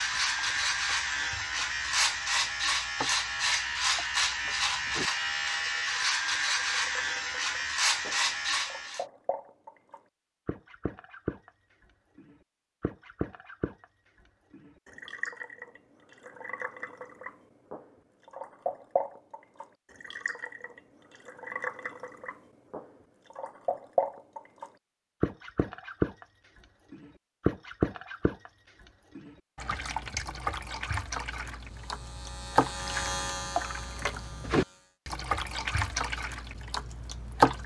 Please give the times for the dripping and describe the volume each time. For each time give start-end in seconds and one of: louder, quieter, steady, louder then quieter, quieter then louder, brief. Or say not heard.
0.0-37.6 louder.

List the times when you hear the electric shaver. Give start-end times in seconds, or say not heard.
0.0-9.1, 31.6-35.0.